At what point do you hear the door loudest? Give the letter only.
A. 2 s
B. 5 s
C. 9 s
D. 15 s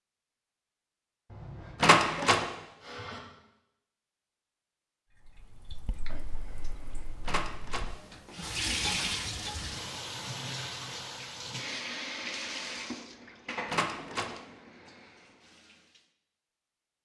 A.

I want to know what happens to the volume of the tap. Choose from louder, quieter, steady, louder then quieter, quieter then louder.
louder then quieter.